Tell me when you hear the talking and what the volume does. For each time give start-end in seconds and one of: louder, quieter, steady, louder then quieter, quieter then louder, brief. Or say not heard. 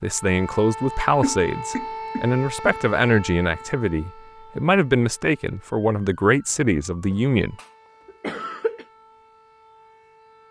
0.0-7.5 steady.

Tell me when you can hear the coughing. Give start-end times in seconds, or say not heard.
1.2-2.8, 7.1-8.8.